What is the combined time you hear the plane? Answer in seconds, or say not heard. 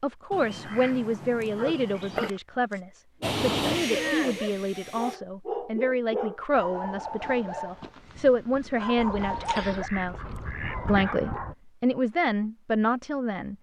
2 s.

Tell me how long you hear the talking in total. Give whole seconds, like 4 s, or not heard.
13 s.